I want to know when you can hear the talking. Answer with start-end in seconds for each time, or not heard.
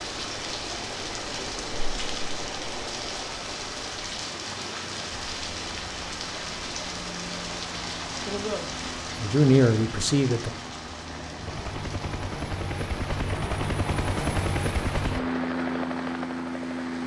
8.2-10.5.